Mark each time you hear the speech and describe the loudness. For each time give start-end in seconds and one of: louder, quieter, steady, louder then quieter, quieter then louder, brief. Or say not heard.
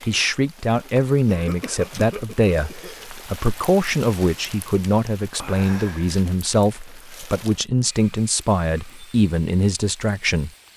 0.1-10.5 steady.